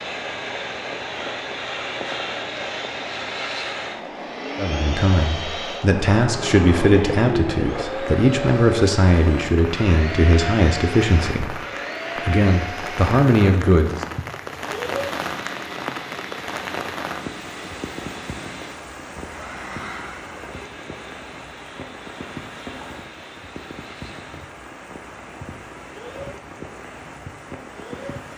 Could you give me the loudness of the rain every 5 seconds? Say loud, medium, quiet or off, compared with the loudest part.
loud, loud, loud, loud, medium, medium.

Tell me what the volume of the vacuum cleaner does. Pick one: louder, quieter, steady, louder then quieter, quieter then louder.
quieter.